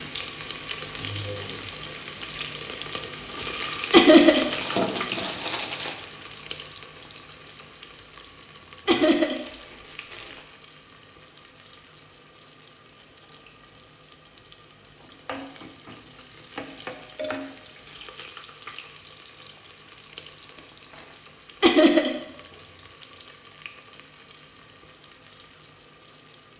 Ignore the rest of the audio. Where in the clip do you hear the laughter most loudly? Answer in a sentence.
The volume of the laughter peaks at 4 seconds.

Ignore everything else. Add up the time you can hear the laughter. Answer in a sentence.
You can hear the laughter for 2 seconds altogether.